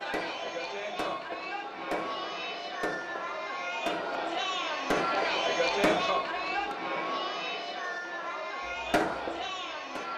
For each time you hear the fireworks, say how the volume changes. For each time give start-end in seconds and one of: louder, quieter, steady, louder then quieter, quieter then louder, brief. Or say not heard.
0.0-6.8 louder
8.7-10.1 brief.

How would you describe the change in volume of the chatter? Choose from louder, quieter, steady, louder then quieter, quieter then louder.
louder then quieter.